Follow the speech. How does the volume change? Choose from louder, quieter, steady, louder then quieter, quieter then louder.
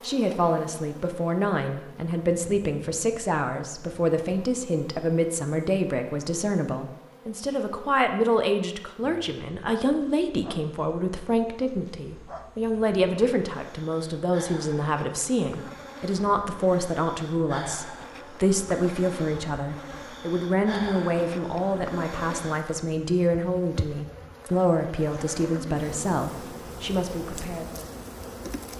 steady.